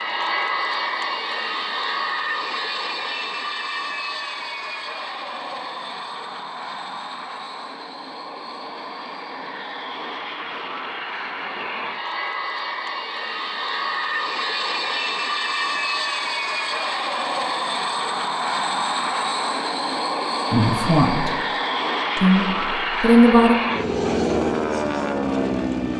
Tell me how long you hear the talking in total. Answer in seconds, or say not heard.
2 s.